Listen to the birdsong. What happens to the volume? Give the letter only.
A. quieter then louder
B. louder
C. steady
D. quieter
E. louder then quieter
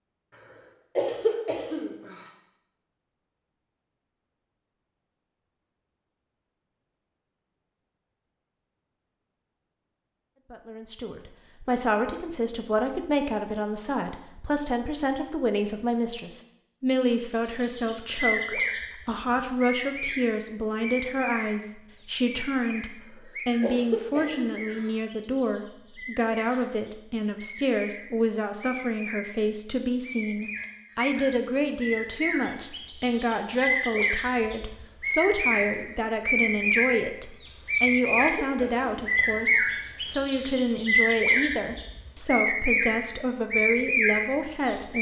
A.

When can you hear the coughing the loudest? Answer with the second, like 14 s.
1 s.